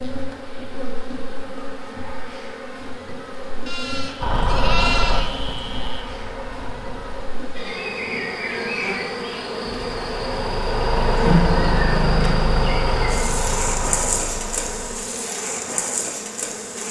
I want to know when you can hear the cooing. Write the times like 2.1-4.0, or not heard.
not heard.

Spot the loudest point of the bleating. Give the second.
5 s.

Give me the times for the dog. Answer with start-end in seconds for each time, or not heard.
not heard.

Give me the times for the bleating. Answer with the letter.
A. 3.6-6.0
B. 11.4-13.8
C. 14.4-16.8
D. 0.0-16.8
A.